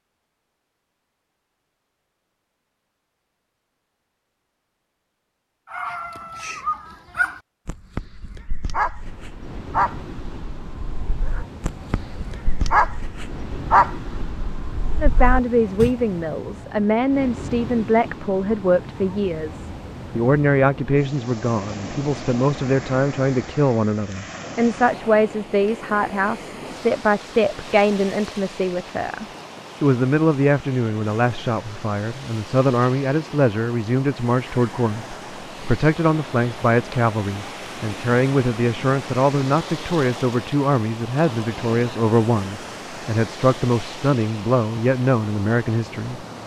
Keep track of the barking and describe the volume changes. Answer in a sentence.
The loudness of the barking goes up, then down.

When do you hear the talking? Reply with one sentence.
The talking can be heard from 15.0 to 46.2 s.